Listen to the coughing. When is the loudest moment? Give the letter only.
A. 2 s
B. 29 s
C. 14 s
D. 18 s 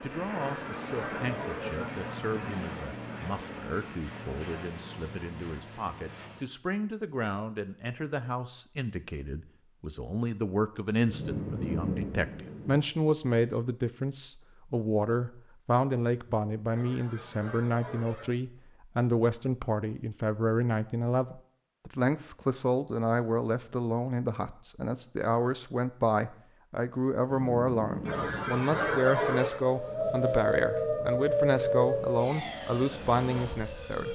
B.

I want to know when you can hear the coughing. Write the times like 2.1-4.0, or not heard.
0.2-2.8, 16.7-18.3, 28.1-29.6.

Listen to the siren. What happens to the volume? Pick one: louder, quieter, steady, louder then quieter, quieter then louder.
quieter.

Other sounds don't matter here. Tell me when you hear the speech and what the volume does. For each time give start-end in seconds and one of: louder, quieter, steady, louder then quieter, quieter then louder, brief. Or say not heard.
0.0-34.1 louder.